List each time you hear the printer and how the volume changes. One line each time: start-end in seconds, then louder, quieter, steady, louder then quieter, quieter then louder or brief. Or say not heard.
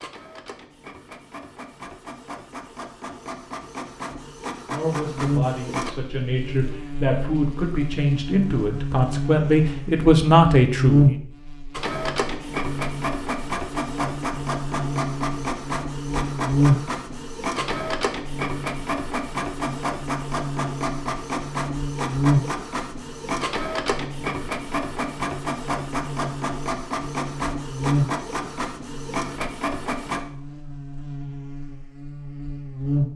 0.0-5.9 louder
11.7-30.2 steady.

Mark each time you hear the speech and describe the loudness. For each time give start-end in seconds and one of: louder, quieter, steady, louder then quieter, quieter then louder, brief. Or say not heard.
4.7-11.2 louder.